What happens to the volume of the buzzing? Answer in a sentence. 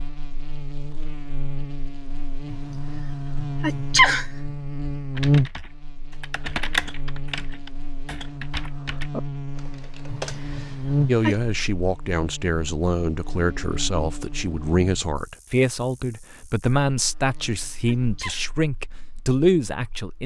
The loudness of the buzzing goes up, then down.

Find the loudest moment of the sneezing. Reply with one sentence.
The volume of the sneezing peaks at 4 seconds.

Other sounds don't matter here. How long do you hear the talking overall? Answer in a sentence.
You can hear the talking for 9 seconds altogether.